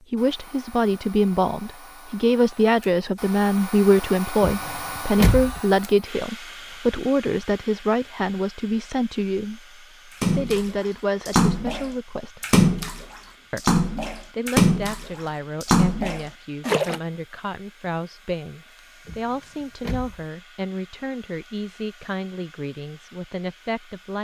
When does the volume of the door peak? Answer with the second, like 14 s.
5 s.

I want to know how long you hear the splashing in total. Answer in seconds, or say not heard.
7 s.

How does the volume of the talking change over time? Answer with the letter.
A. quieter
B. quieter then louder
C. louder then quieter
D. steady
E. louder
A.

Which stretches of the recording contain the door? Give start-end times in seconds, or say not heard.
4.4-5.6, 19.1-20.2.